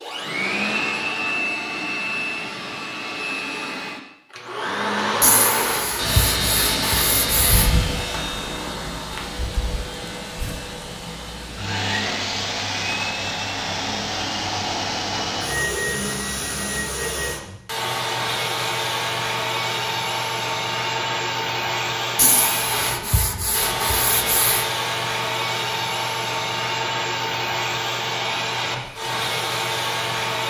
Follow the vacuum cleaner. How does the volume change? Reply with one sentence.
The loudness of the vacuum cleaner stays about the same.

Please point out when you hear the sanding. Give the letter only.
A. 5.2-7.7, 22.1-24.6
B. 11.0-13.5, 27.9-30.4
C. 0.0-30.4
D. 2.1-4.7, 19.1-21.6
A.